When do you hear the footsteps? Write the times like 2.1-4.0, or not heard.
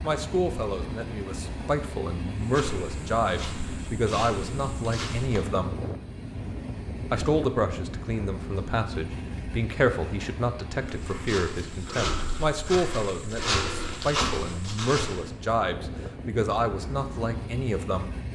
2.4-5.5, 10.8-15.3.